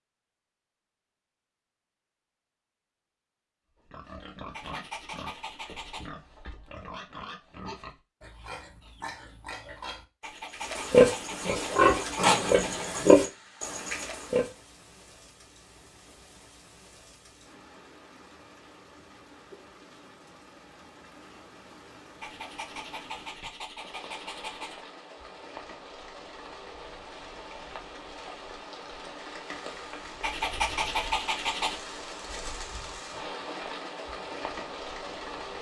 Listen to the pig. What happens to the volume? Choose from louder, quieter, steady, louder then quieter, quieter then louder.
louder.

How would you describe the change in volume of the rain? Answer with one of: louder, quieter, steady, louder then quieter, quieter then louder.
louder.